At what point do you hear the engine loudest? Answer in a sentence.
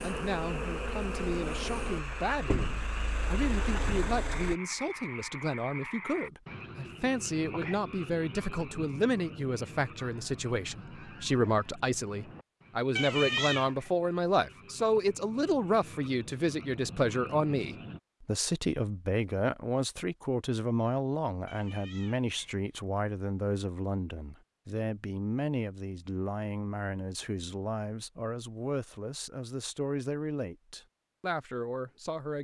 The loudest moment of the engine is at 4 seconds.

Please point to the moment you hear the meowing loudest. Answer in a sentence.
The volume of the meowing peaks at 13 seconds.